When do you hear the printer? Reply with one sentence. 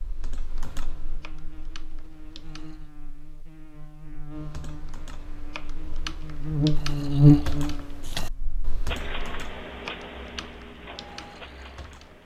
The printer can be heard from 8.8 to 12.2 s.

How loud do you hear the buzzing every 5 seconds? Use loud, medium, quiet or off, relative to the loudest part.
quiet, loud, off.